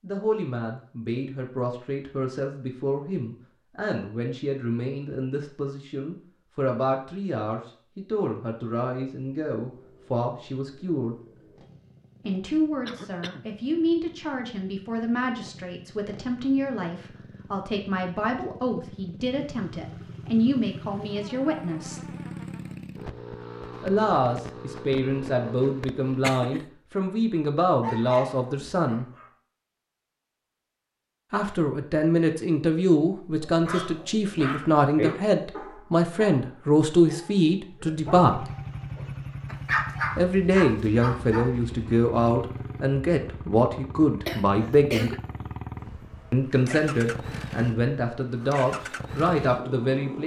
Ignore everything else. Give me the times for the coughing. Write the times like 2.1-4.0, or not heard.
12.8-13.4, 26.1-26.6, 44.2-45.2.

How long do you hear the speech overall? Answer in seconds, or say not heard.
42 s.